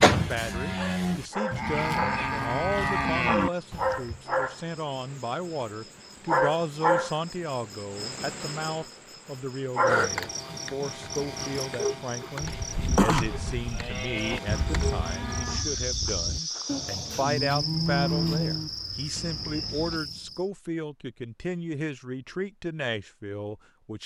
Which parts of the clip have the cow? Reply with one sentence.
You can hear the cow from 0.0 to 4.1 s and from 12.4 to 18.7 s.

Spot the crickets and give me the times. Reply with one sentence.
The crickets can be heard from 0.0 to 20.4 s.